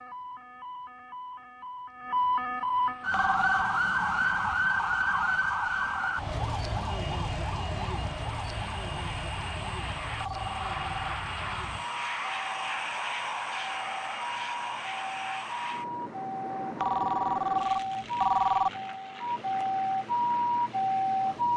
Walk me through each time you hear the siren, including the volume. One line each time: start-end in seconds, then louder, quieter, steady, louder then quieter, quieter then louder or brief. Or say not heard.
0.0-21.5 quieter then louder.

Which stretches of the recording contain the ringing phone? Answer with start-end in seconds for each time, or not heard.
3.1-3.6, 10.2-11.2, 16.8-18.7.